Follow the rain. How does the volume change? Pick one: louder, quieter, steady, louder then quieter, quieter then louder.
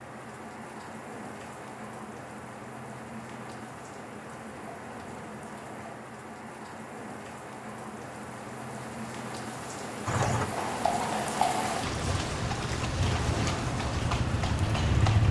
louder.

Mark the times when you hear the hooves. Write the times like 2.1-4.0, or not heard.
10.1-15.2.